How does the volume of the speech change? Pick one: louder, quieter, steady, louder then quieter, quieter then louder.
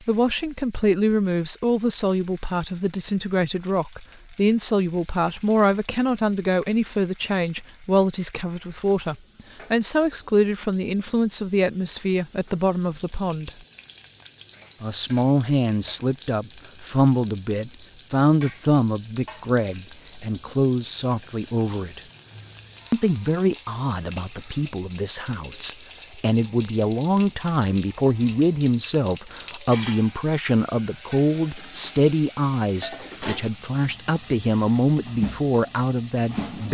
steady.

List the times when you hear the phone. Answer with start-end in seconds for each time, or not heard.
not heard.